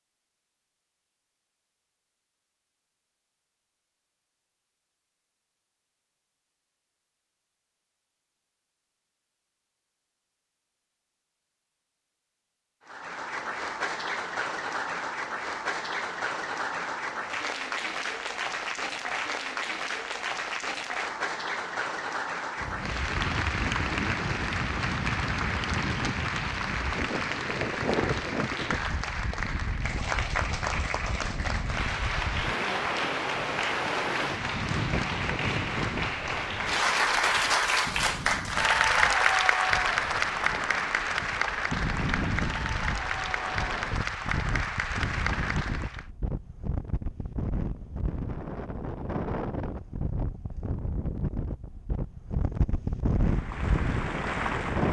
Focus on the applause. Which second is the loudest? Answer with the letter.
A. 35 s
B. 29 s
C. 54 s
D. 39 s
D.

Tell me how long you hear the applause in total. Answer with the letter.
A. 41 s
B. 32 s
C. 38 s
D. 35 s
D.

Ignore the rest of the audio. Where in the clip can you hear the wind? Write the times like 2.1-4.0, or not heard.
22.6-54.8.